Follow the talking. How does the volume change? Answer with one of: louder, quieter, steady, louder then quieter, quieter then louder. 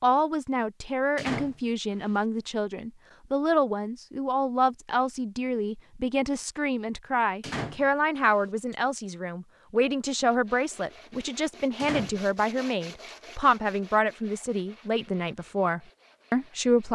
steady.